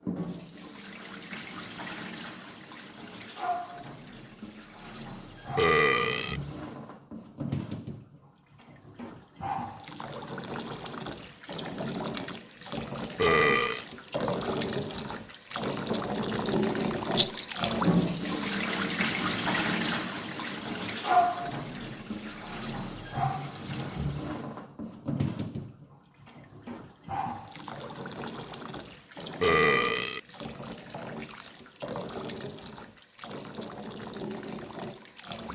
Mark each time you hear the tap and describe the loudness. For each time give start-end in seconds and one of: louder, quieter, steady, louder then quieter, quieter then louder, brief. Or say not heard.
0.0-35.5 louder then quieter.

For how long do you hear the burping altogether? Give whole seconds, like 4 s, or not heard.
2 s.